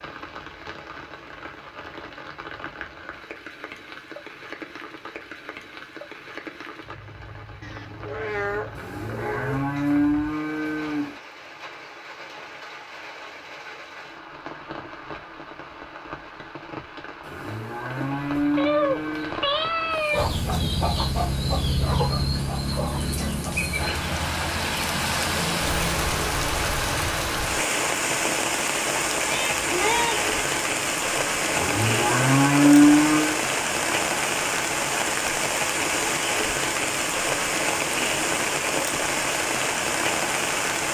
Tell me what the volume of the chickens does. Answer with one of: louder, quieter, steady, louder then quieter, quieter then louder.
quieter.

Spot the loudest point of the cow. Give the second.
33 s.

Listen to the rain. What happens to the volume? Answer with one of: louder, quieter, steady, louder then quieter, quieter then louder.
louder.